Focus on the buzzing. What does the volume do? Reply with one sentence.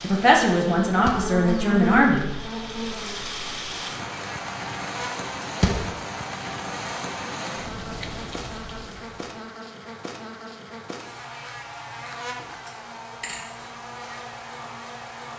The loudness of the buzzing goes down.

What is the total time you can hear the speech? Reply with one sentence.
The speech can be heard for 2 seconds in total.